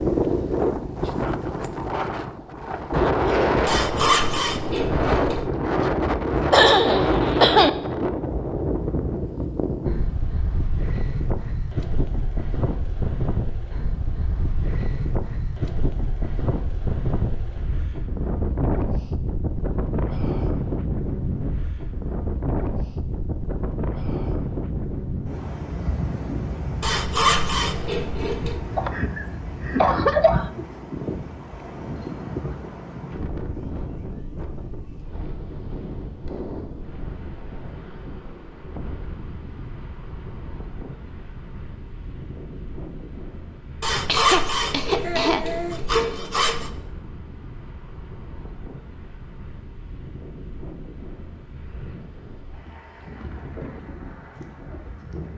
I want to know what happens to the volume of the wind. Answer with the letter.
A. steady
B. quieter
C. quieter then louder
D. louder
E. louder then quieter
B.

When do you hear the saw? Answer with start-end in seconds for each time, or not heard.
3.6-5.5, 26.8-28.6, 43.8-46.7.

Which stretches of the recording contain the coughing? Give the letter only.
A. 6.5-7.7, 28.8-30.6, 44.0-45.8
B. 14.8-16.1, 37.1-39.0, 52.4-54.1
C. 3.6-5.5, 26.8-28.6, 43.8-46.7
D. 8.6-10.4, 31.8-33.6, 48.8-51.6
A.